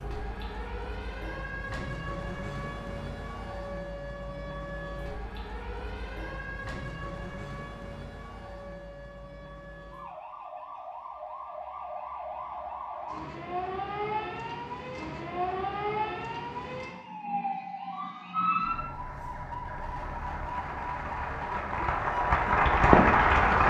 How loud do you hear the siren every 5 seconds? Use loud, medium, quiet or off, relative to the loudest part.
medium, medium, loud, loud, loud.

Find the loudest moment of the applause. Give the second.
23 s.